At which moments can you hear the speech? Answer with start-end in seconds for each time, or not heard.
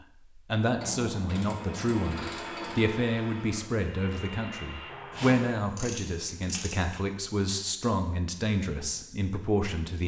0.3-10.0.